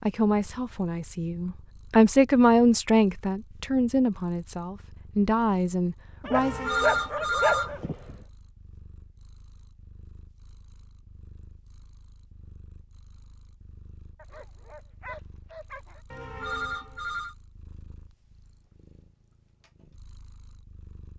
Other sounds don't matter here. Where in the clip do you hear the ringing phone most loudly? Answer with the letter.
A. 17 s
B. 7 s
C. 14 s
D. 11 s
B.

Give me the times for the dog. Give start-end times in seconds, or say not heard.
6.2-8.2, 14.2-16.0.